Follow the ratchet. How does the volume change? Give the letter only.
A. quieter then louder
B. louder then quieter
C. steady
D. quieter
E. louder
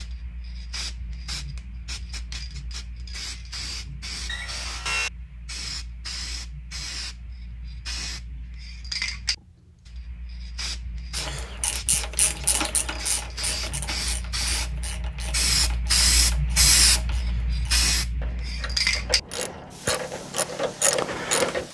A.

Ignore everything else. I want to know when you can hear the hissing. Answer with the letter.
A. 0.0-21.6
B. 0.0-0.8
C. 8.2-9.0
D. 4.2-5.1
A.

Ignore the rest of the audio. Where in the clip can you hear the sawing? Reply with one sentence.
You can hear the sawing from 4.2 to 5.1 s.